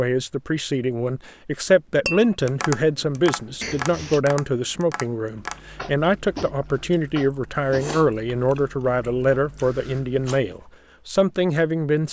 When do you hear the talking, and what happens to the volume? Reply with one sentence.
The talking can be heard from 0.0 to 12.0 s, at a steady volume.